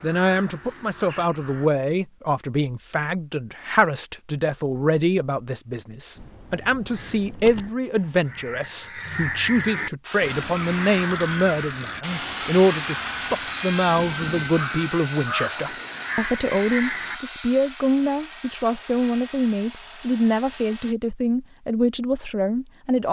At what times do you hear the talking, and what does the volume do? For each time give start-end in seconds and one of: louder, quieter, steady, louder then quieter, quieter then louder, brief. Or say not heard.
0.0-23.0 steady.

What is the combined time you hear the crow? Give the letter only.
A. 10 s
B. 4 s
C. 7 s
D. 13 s
D.